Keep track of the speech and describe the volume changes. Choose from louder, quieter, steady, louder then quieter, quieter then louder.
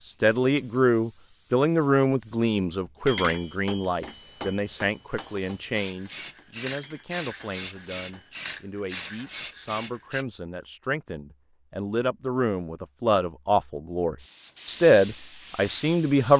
quieter then louder.